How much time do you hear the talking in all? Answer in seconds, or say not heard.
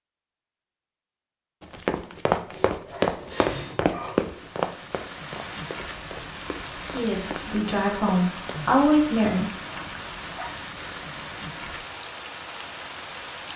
3 s.